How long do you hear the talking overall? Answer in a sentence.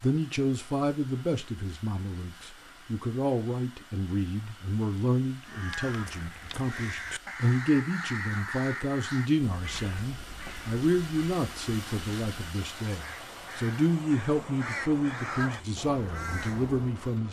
The talking can be heard for 17 seconds in total.